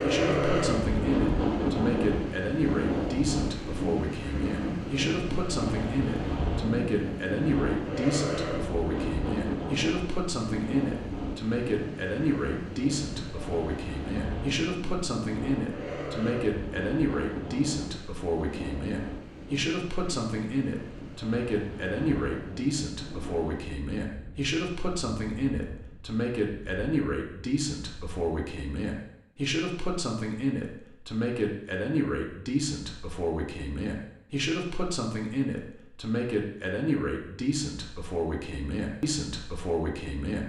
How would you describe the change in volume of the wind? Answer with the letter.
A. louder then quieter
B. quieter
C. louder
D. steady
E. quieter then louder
B.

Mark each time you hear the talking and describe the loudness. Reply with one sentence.
You can hear the talking from 0.0 to 40.4 s, at a steady volume.